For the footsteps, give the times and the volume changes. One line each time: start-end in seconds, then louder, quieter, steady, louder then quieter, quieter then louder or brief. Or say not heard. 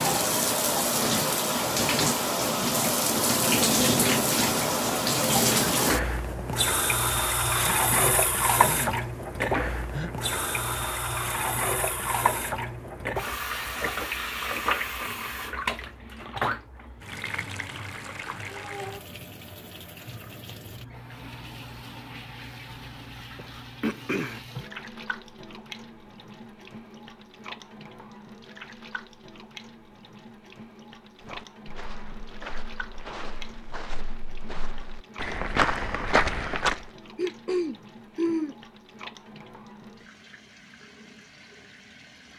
31.2-36.9 louder.